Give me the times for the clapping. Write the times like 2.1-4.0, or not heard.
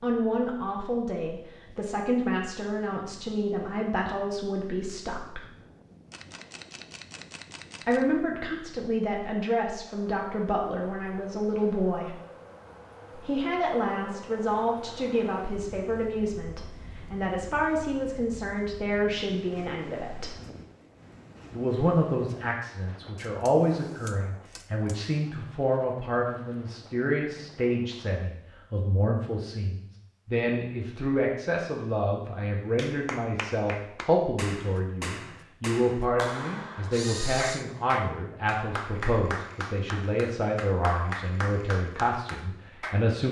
32.8-43.0.